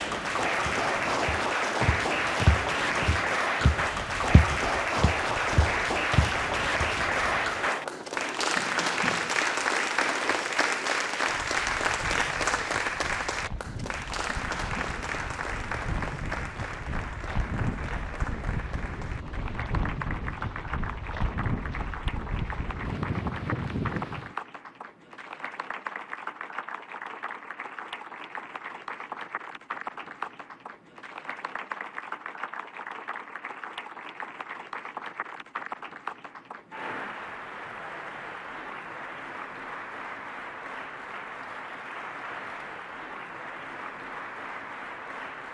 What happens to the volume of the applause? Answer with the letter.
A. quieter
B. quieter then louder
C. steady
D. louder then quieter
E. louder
A.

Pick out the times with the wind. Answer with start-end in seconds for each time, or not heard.
0.0-24.4.